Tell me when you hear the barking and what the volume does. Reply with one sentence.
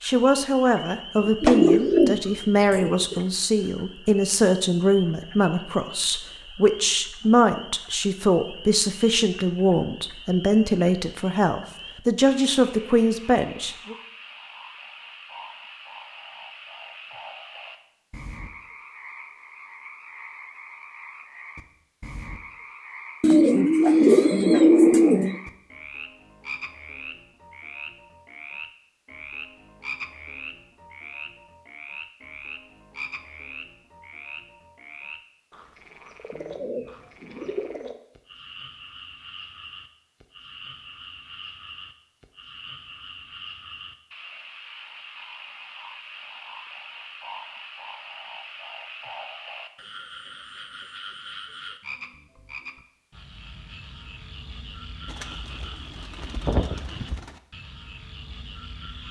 The barking can't be heard in this clip.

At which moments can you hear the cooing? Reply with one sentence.
You can hear the cooing from 1.2 to 3.2 s, from 23.2 to 25.4 s, from 36.3 to 38.0 s and from 55.0 to 57.4 s.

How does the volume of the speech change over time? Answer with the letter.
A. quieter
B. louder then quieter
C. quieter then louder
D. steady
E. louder
D.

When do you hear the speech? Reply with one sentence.
The speech can be heard from 0.0 to 13.9 s.